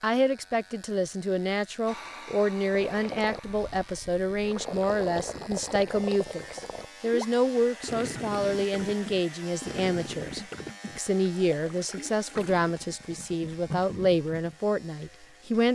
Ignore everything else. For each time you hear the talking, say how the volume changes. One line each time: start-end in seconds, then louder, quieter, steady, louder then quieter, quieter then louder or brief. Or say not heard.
0.0-15.7 steady.